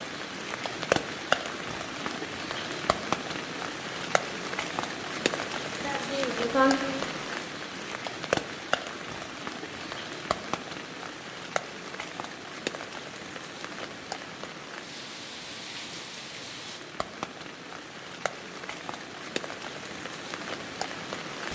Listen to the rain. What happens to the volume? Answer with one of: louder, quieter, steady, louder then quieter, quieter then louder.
quieter.